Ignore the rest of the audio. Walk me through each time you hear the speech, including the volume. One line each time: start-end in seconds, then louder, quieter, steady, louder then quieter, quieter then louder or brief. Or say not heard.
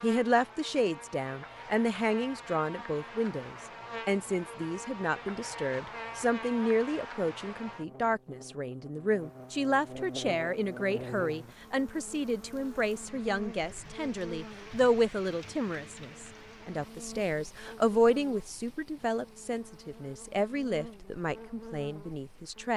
0.0-22.7 steady.